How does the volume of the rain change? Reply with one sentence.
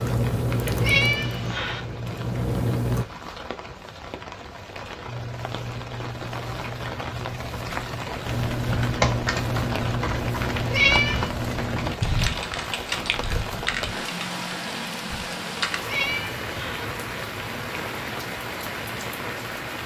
The loudness of the rain goes up.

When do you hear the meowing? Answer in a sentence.
The meowing can be heard from 0.5 to 1.8 s, from 10.4 to 11.3 s and from 15.6 to 16.9 s.